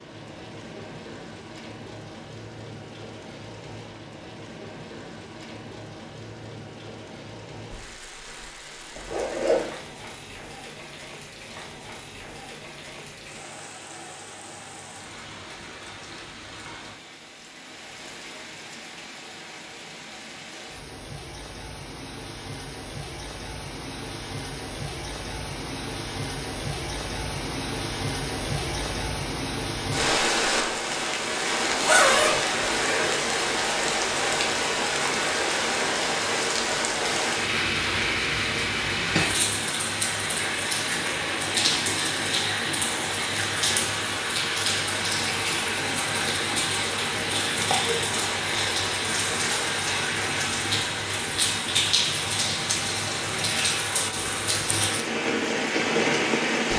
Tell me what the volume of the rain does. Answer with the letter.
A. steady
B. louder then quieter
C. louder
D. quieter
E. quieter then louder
C.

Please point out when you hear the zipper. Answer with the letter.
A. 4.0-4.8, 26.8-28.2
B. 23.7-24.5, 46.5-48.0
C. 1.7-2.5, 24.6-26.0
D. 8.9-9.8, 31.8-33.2
D.